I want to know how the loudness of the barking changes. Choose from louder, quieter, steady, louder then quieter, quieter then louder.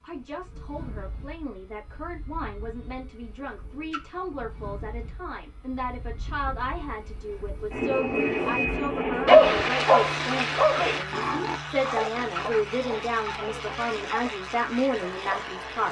quieter.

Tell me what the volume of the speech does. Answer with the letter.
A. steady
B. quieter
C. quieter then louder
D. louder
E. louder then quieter
D.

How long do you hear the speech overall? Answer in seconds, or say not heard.
16 s.